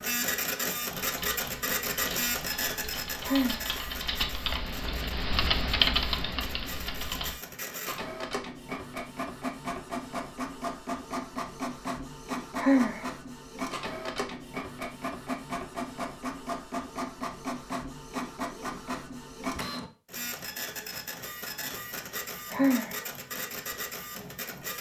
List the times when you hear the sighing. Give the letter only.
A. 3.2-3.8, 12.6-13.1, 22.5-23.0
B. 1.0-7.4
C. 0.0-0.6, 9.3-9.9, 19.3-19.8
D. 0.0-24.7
A.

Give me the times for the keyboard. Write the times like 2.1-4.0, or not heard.
1.0-7.4.